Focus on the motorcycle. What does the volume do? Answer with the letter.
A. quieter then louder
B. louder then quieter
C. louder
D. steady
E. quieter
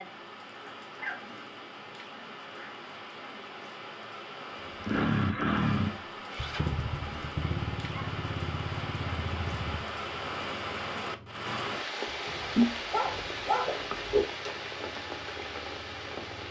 E.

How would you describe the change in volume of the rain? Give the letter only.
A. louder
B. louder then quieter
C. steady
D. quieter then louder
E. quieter
A.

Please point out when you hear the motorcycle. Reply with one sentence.
The motorcycle can be heard from 4.7 to 16.4 s.